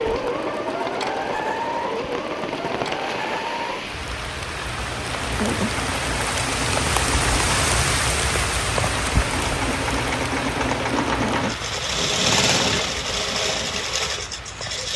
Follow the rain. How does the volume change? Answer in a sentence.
The volume of the rain goes up, then down.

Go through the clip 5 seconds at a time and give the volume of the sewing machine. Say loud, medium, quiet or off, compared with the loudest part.
loud, medium, loud.